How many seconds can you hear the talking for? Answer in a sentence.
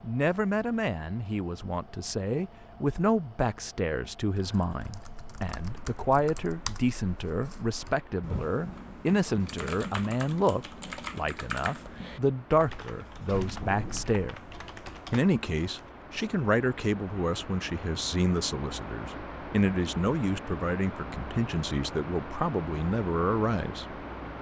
The talking can be heard for 23 seconds in total.